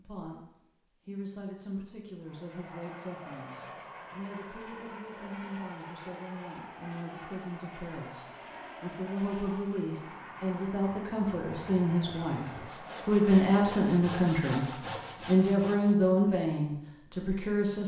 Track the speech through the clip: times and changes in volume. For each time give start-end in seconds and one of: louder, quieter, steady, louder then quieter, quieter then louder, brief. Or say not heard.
0.0-17.8 louder.